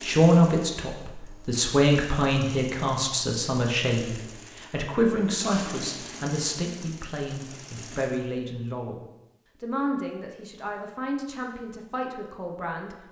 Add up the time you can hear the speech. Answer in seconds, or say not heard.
13 s.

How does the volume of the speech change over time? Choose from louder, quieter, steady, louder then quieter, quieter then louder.
quieter.